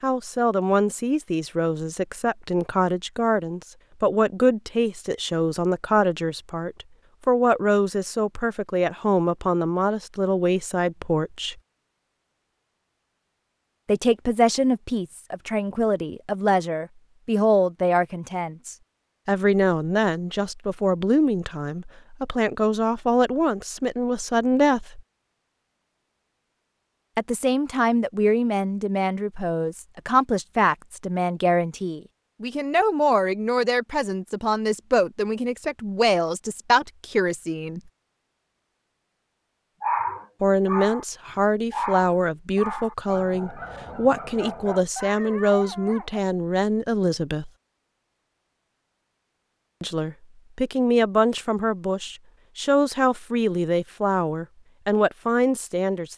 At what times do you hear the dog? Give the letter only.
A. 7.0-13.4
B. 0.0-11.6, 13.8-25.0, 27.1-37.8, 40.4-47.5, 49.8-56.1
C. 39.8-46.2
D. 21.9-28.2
C.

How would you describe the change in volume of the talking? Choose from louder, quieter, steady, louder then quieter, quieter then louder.
steady.